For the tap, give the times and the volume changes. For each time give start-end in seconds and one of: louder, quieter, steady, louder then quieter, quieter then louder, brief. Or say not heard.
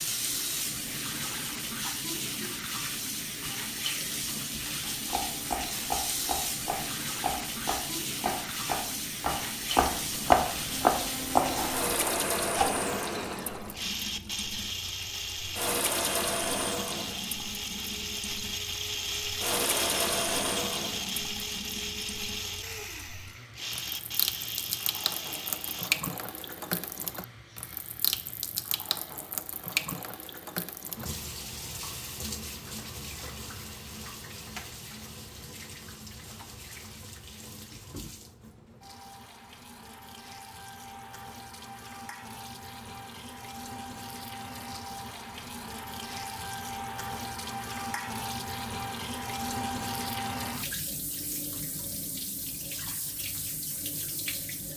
0.0-54.7 quieter then louder.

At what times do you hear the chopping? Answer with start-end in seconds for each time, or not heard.
4.8-12.7.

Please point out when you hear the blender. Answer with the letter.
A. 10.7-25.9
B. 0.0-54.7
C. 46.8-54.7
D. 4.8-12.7
A.